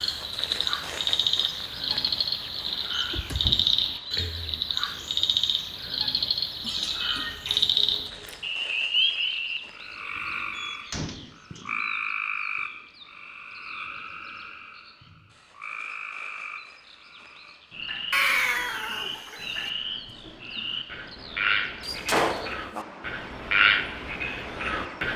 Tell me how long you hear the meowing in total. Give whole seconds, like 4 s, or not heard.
4 s.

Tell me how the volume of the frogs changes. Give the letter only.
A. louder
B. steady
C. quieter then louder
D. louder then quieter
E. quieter
C.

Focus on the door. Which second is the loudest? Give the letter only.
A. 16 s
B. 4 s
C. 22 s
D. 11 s
C.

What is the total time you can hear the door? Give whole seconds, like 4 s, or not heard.
4 s.